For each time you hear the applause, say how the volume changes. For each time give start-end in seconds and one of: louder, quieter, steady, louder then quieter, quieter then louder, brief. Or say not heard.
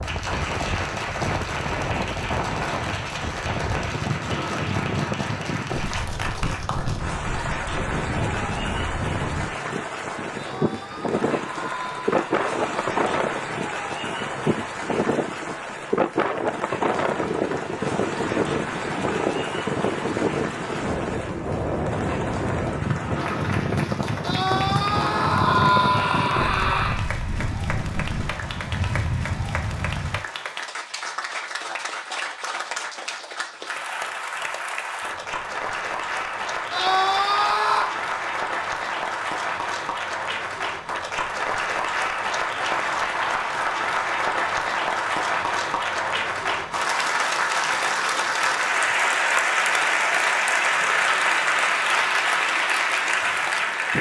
0.0-53.9 louder.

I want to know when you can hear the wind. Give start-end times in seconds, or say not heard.
0.0-30.2.